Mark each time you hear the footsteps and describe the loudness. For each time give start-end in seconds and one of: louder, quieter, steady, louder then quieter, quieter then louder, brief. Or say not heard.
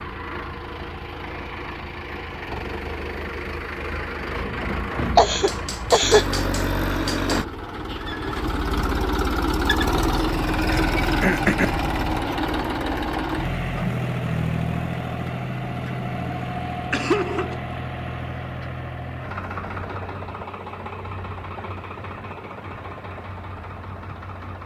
not heard.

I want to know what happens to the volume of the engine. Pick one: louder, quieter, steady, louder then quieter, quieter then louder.
louder then quieter.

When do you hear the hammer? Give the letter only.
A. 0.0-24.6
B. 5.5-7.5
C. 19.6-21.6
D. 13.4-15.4
B.